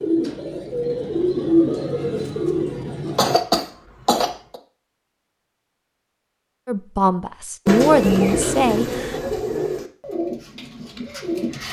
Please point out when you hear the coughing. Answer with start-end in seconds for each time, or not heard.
3.1-4.6.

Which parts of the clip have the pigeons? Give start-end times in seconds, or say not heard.
0.0-3.4, 7.7-11.6.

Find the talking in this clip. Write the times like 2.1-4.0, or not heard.
6.7-9.2.